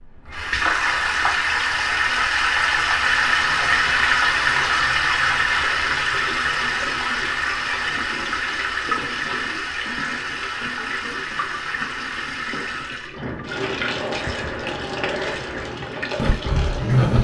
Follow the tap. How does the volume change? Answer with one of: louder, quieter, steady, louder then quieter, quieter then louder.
quieter.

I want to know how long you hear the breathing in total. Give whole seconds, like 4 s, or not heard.
4 s.